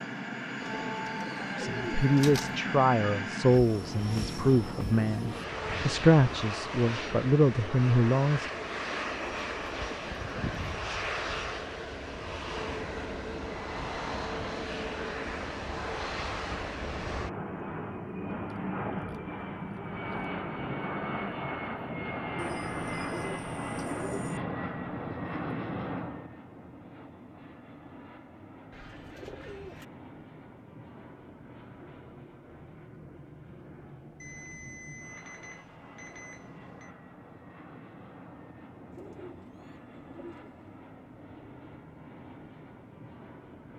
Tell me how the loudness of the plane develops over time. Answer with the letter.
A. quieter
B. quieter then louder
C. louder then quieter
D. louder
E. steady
A.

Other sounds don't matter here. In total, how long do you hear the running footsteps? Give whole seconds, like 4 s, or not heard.
not heard.